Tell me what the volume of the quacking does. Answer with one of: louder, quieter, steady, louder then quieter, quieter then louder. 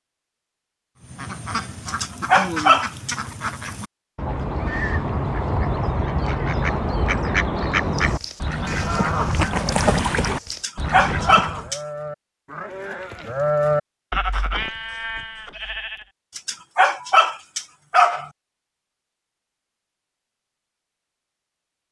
louder.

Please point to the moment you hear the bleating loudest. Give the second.
14 s.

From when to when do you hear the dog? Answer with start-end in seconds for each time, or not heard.
1.9-3.5, 10.5-11.8, 16.4-18.2.